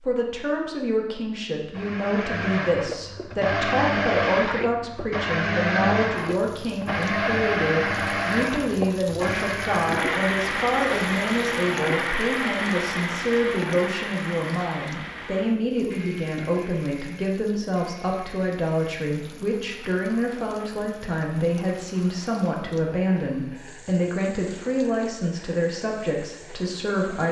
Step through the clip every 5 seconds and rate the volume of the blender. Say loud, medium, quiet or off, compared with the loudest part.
loud, loud, loud, quiet, quiet, quiet.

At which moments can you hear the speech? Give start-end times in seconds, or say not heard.
0.0-27.2.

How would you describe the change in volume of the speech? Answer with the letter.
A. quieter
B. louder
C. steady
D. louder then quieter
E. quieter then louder
C.